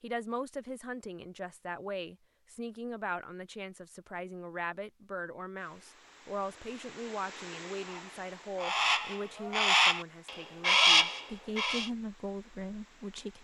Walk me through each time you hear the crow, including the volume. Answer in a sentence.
The crow can be heard from 7.8 to 11.9 s, getting louder.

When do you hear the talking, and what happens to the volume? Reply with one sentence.
You can hear the talking from 0.0 to 13.3 s, at a steady volume.